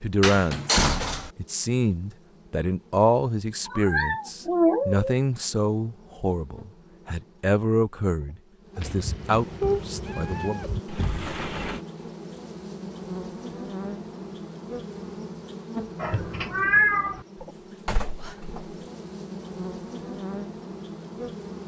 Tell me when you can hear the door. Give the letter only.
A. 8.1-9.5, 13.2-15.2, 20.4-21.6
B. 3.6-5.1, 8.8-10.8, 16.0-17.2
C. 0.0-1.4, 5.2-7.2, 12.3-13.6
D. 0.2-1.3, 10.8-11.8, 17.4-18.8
D.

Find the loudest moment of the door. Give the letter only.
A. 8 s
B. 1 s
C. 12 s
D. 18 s
B.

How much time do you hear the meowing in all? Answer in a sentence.
The meowing can be heard for 5 seconds in total.